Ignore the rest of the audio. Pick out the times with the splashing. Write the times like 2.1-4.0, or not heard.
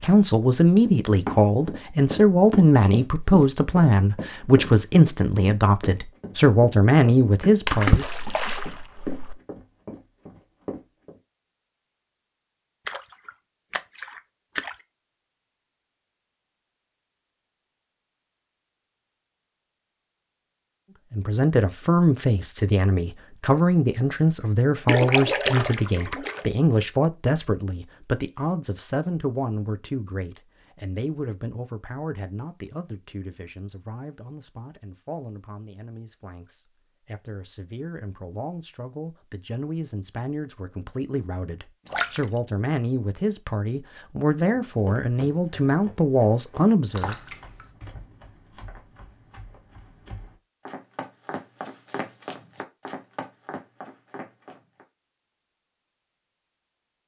7.7-9.3, 12.8-14.8, 24.9-26.5, 41.9-42.5, 47.0-47.6.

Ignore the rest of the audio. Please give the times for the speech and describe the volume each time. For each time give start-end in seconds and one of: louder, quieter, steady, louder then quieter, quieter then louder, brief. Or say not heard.
0.0-8.1 steady
21.1-47.1 quieter then louder.